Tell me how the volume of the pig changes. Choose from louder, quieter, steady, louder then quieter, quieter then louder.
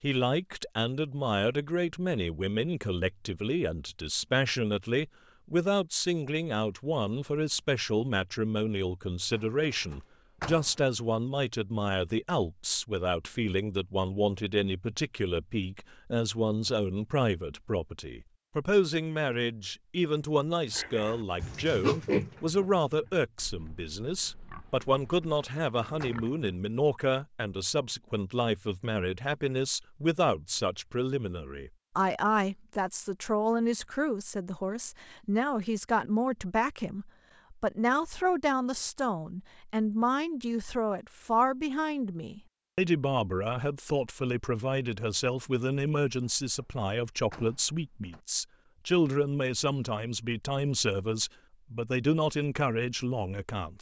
quieter then louder.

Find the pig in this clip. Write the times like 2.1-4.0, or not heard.
20.7-26.5.